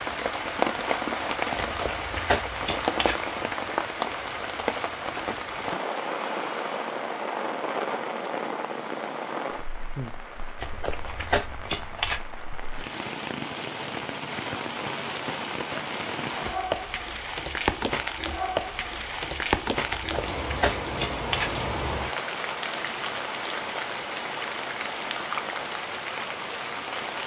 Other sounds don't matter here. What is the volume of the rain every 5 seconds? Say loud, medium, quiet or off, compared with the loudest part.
loud, loud, medium, loud, loud, loud.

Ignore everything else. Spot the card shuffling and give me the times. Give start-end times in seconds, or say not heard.
1.6-3.1, 10.6-12.2, 19.9-21.5.